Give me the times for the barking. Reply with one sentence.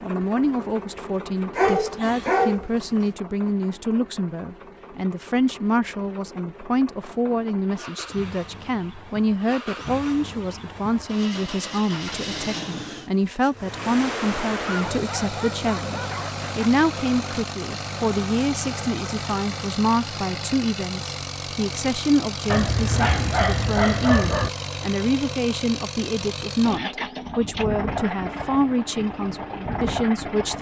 The barking can be heard from 1.6 to 3.0 s, from 14.7 to 16.7 s and from 22.5 to 24.5 s.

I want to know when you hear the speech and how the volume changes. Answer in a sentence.
You can hear the speech from 0.0 to 30.5 s, at a steady volume.